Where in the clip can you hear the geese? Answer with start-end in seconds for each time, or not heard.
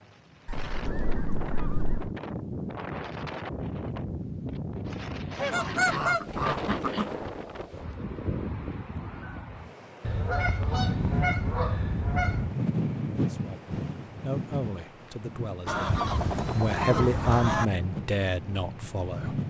0.5-2.1, 5.3-7.2, 10.0-12.6, 15.7-17.7.